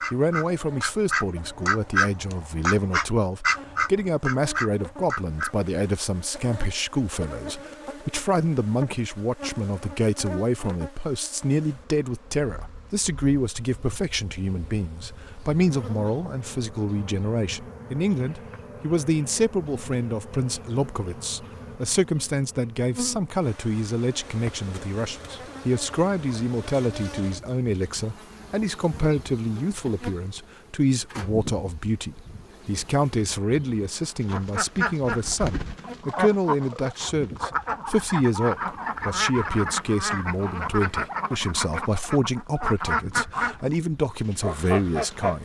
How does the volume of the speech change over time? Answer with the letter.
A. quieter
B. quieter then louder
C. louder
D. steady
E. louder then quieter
D.